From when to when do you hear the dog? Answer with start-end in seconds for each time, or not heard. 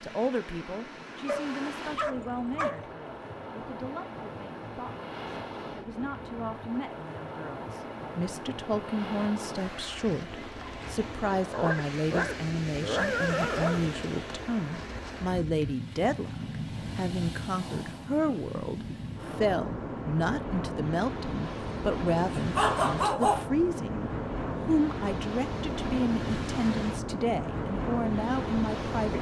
1.2-2.9, 11.5-13.9, 22.4-23.4.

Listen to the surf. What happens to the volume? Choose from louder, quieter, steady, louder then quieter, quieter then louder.
louder.